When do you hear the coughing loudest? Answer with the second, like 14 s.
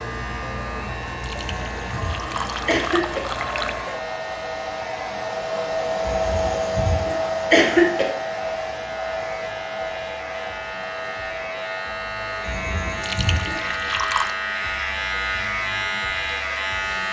8 s.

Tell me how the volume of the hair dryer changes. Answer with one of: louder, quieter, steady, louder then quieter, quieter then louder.
louder then quieter.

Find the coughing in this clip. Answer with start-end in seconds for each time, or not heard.
1.4-3.2, 6.0-8.1, 12.4-13.9.